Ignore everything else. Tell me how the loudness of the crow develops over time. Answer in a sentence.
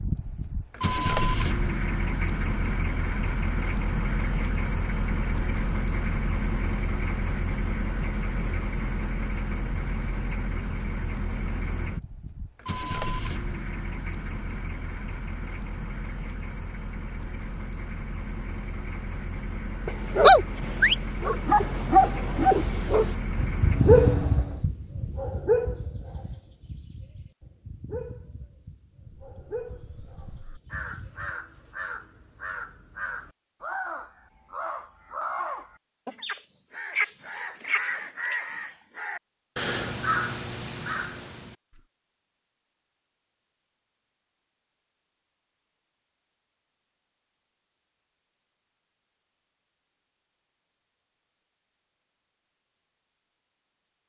The loudness of the crow goes up.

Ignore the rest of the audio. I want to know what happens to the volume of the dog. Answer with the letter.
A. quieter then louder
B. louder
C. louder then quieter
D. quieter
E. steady
D.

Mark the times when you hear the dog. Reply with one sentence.
The dog can be heard from 19.9 to 31.6 s.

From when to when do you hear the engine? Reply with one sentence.
You can hear the engine from 0.0 to 24.6 s.